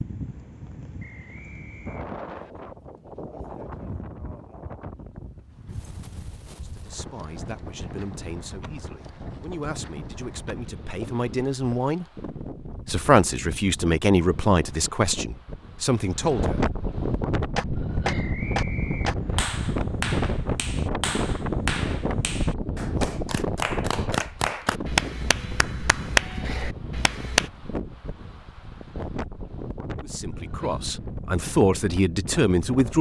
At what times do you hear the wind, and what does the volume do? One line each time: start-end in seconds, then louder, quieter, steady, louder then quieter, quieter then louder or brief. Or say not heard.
0.0-32.9 louder then quieter.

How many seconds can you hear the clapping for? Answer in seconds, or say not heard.
10 s.